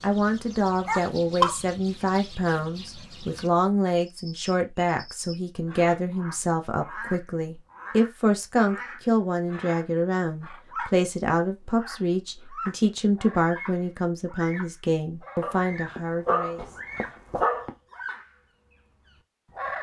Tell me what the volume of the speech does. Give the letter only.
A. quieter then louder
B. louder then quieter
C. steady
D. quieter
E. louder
C.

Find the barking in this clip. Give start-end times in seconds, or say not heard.
0.8-1.6, 15.4-17.7.